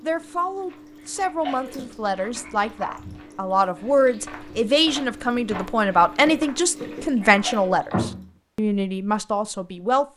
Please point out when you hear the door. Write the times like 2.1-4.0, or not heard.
2.2-3.0, 6.8-8.3.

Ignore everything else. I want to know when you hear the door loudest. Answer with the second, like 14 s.
8 s.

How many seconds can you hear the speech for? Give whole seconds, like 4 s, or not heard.
10 s.